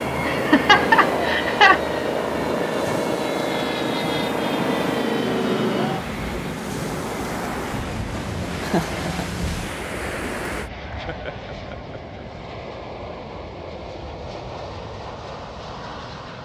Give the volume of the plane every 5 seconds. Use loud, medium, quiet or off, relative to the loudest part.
loud, loud, medium, medium.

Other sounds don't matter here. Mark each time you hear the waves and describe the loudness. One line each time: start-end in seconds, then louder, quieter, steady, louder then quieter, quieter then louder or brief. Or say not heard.
0.0-10.7 steady.